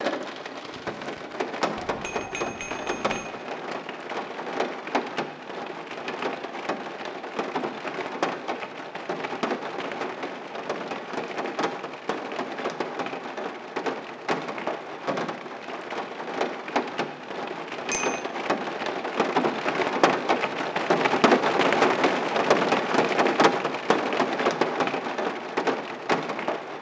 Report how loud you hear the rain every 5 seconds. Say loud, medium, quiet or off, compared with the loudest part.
medium, medium, medium, medium, loud, medium.